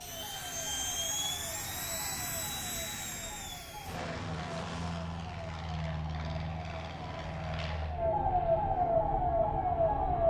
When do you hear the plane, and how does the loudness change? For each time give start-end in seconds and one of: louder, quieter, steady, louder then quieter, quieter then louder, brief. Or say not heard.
0.0-10.2 quieter.